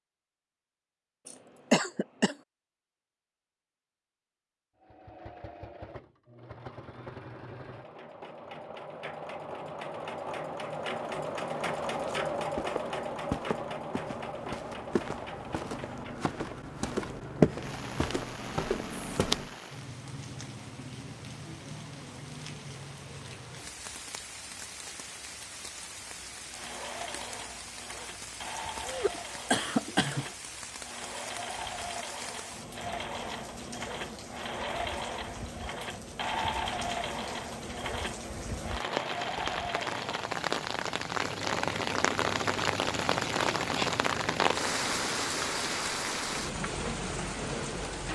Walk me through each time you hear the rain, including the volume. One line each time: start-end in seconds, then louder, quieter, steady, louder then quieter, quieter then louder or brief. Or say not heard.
17.6-48.1 louder.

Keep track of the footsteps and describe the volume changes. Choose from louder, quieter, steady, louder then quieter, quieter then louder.
louder then quieter.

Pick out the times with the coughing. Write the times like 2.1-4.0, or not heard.
1.2-2.4, 28.9-30.2.